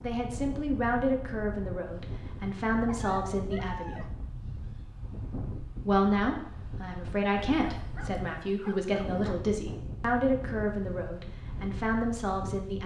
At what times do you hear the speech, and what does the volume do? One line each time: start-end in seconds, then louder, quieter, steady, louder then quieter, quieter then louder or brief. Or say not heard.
0.0-4.0 quieter then louder
5.8-12.8 steady.